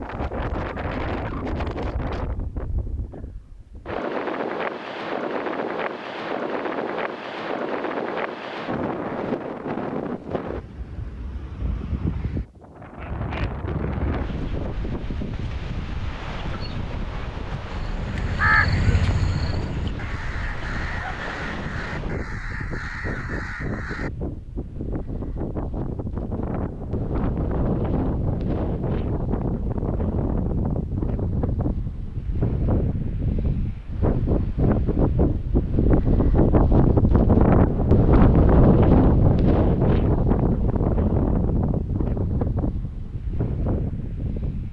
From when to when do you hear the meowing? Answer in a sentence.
You can't hear the meowing here.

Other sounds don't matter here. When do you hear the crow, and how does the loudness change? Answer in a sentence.
You can hear the crow from 17.6 to 24.1 s, getting quieter.